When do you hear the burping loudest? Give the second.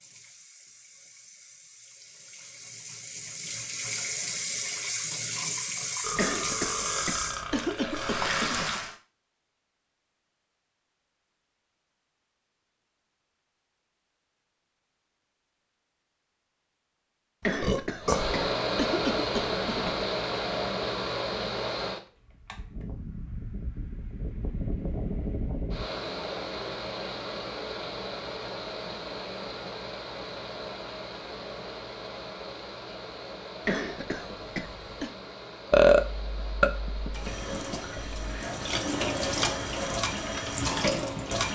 36 s.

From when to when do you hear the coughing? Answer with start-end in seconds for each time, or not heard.
6.2-8.8, 17.4-20.1, 33.6-35.1.